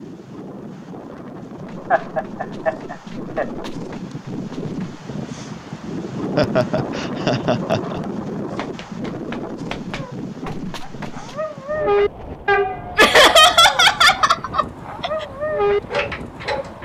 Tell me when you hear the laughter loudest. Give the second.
13 s.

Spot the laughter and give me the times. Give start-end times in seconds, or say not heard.
1.9-3.5, 6.3-8.0, 12.9-15.2.